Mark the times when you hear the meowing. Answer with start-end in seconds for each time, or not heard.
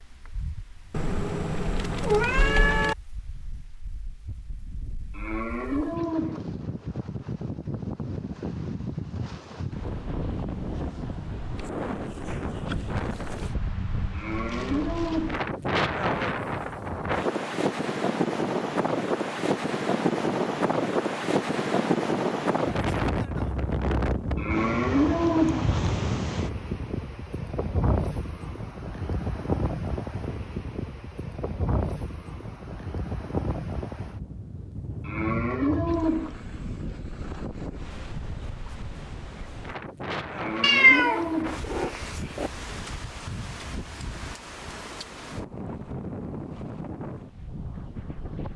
0.9-3.0, 40.6-42.5.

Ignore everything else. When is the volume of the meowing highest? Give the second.
41 s.